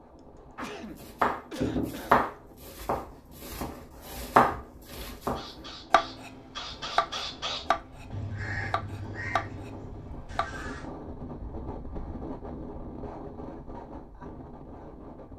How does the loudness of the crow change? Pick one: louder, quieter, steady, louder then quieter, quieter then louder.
louder then quieter.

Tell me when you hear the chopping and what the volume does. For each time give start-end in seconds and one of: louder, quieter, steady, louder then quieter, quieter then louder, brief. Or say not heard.
0.6-10.7 quieter.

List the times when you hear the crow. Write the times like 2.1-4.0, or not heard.
5.3-10.9.